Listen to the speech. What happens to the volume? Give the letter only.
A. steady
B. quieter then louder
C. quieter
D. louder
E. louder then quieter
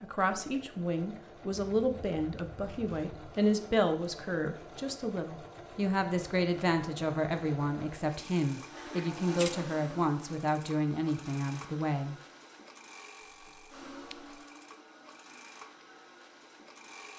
A.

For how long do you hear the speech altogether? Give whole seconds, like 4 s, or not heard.
12 s.